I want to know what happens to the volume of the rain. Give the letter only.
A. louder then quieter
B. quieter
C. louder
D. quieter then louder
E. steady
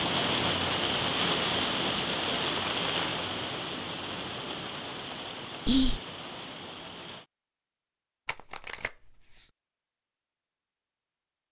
B.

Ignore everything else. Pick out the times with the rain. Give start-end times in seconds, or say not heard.
0.0-7.2.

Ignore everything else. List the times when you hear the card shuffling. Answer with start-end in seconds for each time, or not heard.
2.5-3.2, 8.2-9.5.